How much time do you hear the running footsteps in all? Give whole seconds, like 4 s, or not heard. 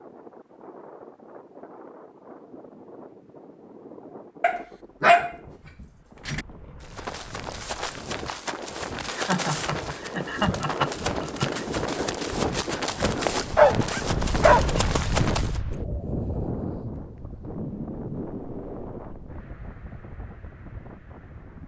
9 s.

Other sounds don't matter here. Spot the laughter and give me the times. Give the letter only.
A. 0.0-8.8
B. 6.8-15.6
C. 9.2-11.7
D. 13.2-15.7
C.